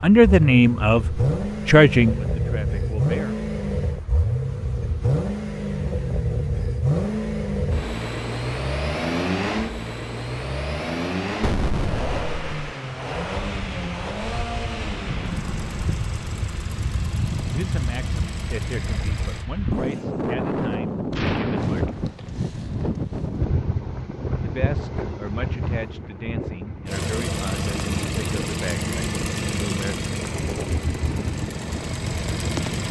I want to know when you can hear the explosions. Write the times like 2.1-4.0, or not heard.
11.4-12.6, 21.1-22.1.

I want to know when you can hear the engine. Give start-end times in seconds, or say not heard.
0.0-19.4, 26.9-32.8.